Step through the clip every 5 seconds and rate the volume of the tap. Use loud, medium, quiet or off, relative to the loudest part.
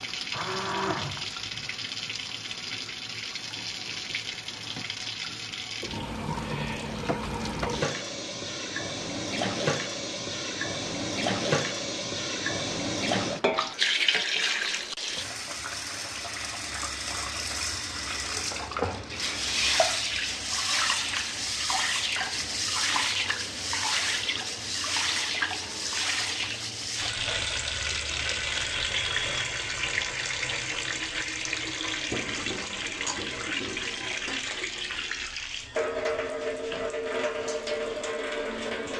medium, loud, loud, loud, loud, loud, loud, loud.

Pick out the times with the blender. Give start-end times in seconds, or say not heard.
0.0-1.7.